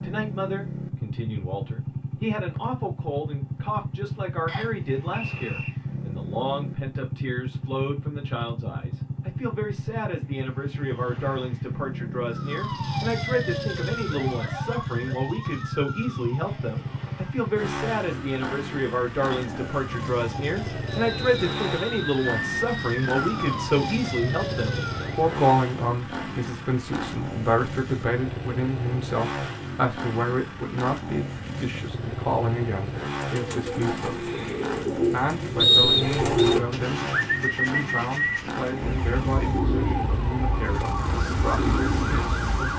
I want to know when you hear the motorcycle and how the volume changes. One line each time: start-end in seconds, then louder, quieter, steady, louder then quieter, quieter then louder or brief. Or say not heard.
0.0-42.7 steady.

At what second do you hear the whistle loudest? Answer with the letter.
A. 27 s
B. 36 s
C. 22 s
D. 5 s
B.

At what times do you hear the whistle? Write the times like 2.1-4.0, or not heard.
4.5-5.7, 20.9-22.4, 35.5-36.5.